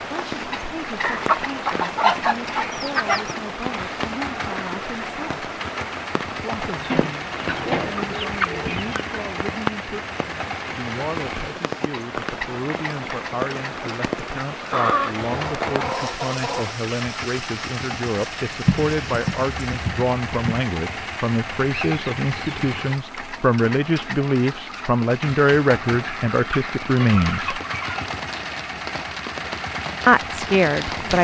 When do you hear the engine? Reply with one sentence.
The engine can be heard from 0.1 to 31.1 s.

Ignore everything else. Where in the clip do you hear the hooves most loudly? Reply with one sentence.
The volume of the hooves peaks at 19 seconds.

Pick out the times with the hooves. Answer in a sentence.
You can hear the hooves from 18.6 to 20.6 s.